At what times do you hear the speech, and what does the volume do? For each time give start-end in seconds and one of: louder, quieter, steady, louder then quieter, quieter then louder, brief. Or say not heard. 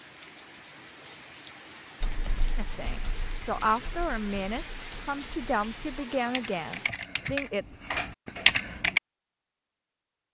2.5-7.7 quieter.